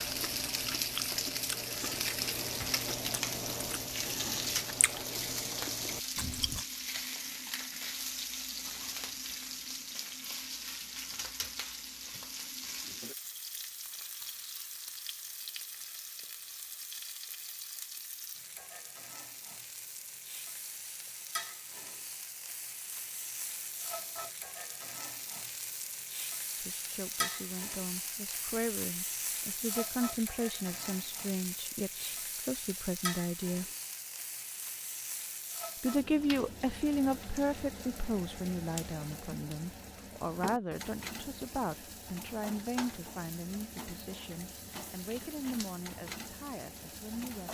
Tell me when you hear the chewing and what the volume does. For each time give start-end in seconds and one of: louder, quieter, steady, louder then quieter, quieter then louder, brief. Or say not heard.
0.0-6.7 steady.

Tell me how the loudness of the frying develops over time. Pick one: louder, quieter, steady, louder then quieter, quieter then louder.
quieter.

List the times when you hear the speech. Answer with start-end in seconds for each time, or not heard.
26.6-33.6, 35.8-47.5.